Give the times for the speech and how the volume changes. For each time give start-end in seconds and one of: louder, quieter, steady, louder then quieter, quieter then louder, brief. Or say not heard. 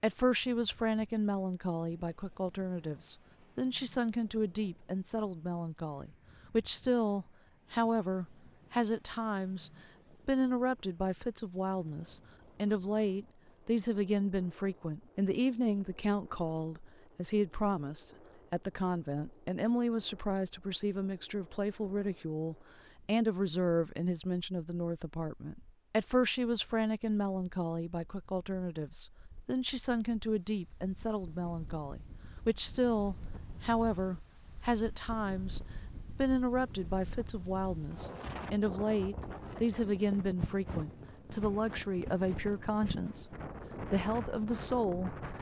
0.0-45.3 steady.